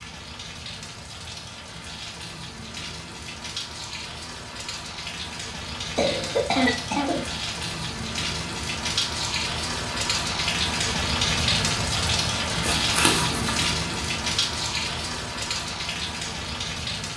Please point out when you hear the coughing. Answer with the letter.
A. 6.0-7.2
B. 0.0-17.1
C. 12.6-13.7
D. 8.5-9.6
A.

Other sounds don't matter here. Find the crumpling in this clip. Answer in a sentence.
You can hear the crumpling from 12.6 to 13.7 s.